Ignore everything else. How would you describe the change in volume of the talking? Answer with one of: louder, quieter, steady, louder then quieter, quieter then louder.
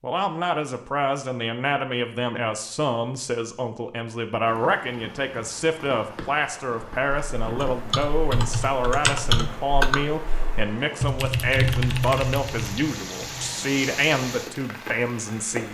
steady.